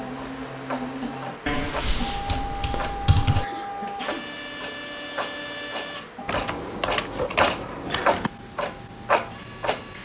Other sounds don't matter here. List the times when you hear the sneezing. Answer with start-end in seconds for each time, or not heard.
3.3-4.3.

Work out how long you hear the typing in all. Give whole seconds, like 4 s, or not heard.
4 s.